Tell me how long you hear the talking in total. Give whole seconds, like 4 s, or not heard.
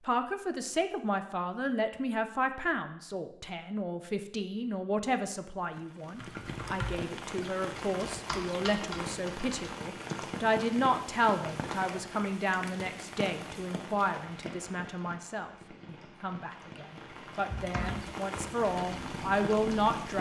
20 s.